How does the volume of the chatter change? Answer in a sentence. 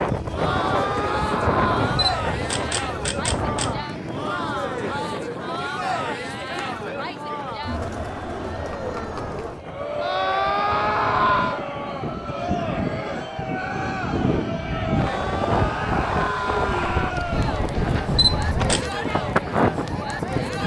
The volume of the chatter stays about the same.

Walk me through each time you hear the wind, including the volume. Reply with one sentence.
You can hear the wind from 0.0 to 20.6 s, getting quieter then louder.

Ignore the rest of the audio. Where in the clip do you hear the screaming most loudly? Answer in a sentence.
The volume of the screaming peaks at 11 seconds.